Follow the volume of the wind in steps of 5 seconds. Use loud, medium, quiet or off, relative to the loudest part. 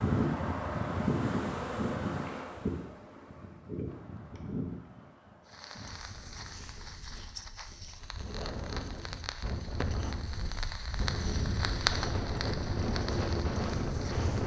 loud, medium, loud.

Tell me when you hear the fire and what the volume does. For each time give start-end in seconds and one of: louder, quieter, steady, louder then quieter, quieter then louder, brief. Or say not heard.
5.5-14.4 louder then quieter.